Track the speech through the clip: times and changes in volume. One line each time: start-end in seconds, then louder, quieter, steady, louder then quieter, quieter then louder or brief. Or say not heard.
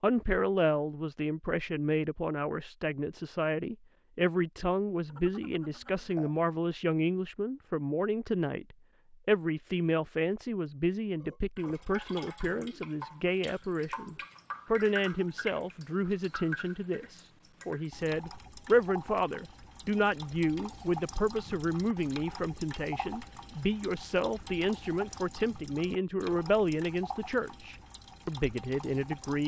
0.0-29.4 steady.